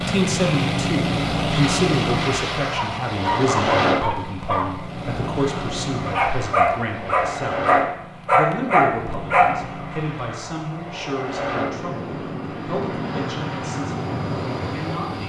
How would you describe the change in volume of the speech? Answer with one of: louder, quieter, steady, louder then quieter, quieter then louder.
quieter.